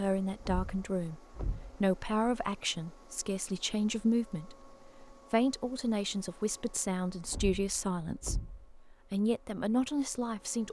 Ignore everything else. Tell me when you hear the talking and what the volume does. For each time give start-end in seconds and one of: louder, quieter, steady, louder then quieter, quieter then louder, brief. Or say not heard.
0.0-10.6 steady.